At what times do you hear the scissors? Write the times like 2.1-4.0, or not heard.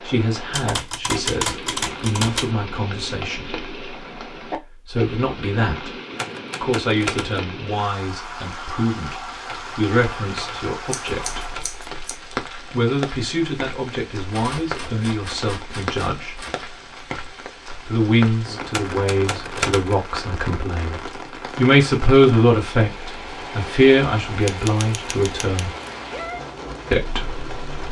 10.9-12.2.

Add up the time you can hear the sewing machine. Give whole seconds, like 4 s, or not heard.
not heard.